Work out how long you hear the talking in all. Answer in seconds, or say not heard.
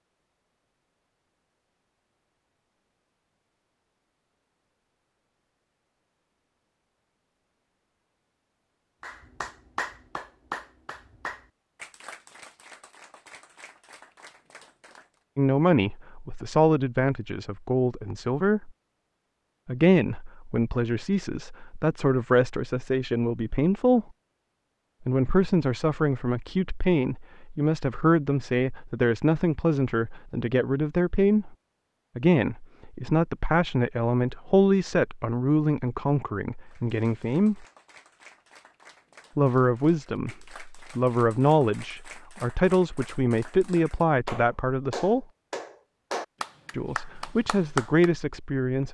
28 s.